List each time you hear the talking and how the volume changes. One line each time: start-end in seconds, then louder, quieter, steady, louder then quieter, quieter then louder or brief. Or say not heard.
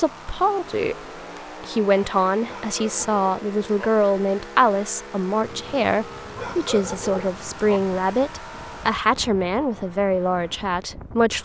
0.0-0.9 brief
1.6-11.3 steady.